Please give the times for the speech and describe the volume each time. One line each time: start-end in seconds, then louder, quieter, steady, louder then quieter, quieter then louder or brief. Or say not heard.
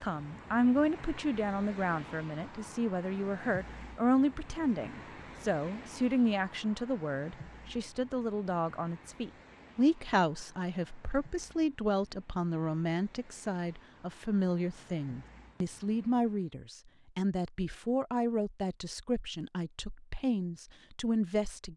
0.0-21.7 steady.